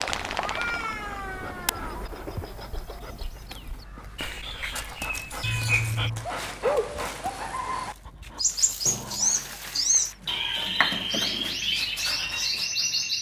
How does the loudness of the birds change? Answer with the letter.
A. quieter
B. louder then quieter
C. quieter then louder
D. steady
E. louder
E.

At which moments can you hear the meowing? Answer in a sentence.
You can hear the meowing from 0.1 to 2.1 s, from 5.4 to 6.3 s and from 8.8 to 10.8 s.